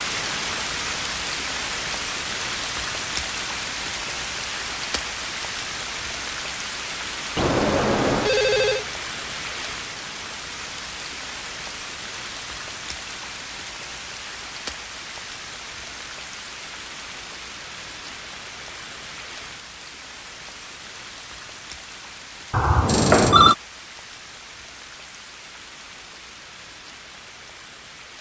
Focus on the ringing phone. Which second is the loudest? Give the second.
23 s.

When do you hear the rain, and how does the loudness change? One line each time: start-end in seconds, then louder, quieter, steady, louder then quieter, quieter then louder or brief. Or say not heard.
0.0-28.1 quieter.